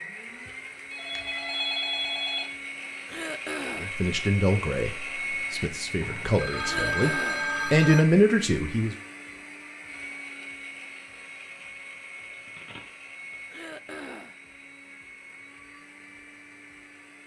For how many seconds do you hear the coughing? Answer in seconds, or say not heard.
3 s.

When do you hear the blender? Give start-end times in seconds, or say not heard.
0.0-17.2.